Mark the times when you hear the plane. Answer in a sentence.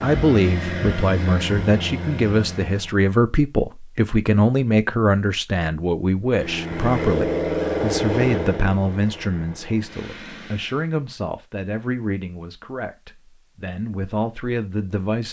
The plane can be heard from 0.0 to 3.0 s and from 6.3 to 10.9 s.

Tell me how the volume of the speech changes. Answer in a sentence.
The loudness of the speech goes down.